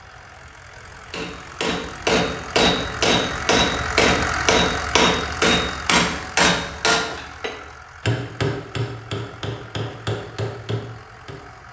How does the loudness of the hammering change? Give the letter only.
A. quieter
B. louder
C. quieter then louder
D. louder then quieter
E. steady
A.